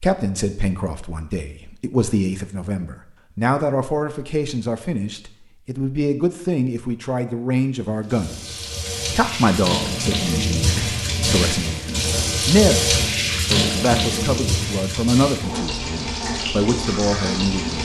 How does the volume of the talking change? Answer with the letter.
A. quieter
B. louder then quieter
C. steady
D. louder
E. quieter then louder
C.